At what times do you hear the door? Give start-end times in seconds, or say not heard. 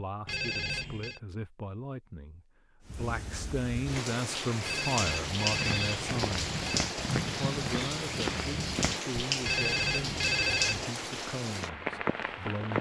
not heard.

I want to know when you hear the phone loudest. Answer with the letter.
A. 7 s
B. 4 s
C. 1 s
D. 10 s
D.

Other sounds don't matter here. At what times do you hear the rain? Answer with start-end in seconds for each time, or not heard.
2.9-12.7.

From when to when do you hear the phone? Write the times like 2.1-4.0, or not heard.
0.2-1.2, 4.6-6.9, 9.4-10.9.